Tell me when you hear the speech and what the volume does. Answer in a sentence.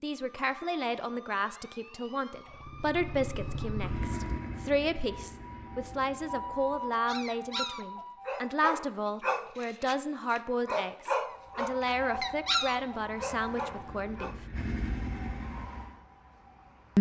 The speech can be heard from 0.0 to 14.3 s, at a steady volume.